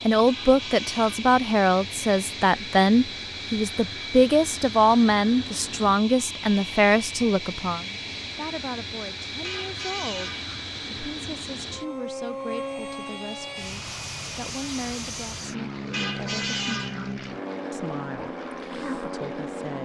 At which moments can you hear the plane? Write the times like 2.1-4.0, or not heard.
0.0-19.8.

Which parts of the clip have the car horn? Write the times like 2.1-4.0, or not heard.
0.2-1.1, 9.4-10.6, 15.9-17.1.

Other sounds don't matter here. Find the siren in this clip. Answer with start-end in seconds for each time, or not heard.
not heard.